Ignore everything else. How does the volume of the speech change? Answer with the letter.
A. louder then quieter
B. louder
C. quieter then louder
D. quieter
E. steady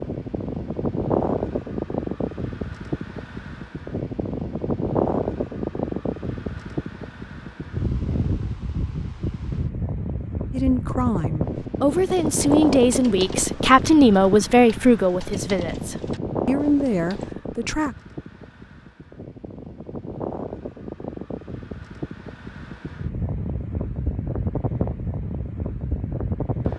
A.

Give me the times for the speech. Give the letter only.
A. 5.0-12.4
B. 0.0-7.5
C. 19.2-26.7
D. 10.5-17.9
D.